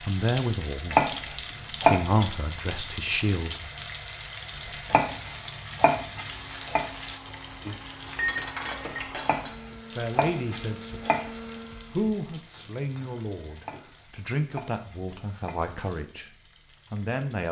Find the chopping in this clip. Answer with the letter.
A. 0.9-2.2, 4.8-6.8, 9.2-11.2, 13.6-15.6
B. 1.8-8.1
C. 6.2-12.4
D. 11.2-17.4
A.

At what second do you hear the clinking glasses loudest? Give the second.
8 s.